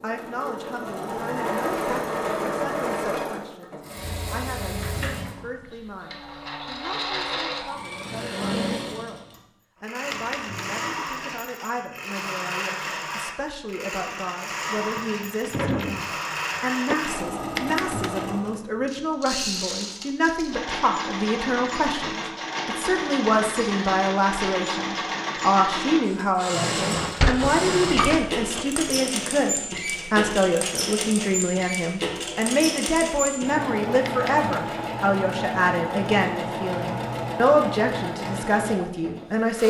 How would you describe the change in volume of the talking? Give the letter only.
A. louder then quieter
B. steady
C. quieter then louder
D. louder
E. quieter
D.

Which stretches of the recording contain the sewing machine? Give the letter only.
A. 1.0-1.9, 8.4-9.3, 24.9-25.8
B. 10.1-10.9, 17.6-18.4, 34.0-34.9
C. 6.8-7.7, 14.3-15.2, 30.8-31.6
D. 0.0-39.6
D.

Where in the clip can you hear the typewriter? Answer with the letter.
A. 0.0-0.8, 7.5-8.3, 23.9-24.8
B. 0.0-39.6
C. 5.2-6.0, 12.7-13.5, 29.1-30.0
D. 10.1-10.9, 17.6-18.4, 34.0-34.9
D.